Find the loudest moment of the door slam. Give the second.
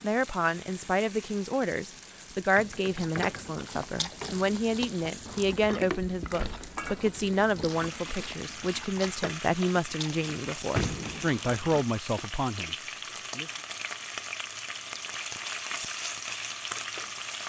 11 s.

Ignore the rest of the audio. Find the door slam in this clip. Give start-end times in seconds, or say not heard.
6.3-6.8, 10.3-11.3.